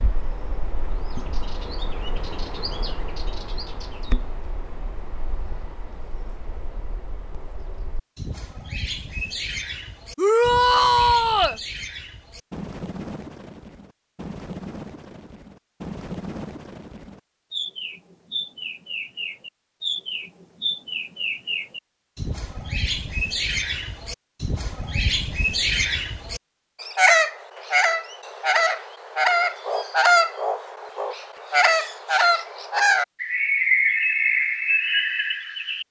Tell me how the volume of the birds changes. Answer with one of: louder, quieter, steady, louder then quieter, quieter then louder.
louder.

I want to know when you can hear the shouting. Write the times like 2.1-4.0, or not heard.
10.2-11.6.